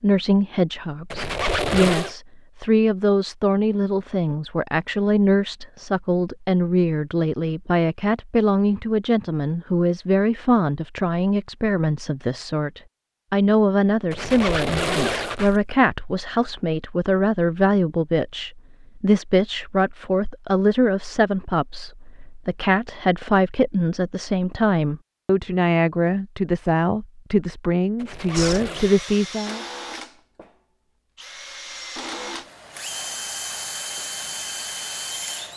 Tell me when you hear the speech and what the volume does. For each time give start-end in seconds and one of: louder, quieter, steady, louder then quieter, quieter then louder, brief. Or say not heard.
0.0-29.6 steady.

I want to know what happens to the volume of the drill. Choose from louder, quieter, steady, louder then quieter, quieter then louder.
quieter then louder.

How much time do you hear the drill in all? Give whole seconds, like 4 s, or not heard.
7 s.